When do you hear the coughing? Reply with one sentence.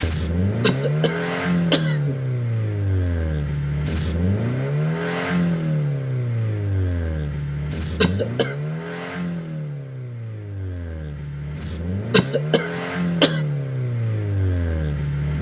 The coughing can be heard from 0.6 to 2.1 s, from 8.0 to 8.7 s and from 12.1 to 13.4 s.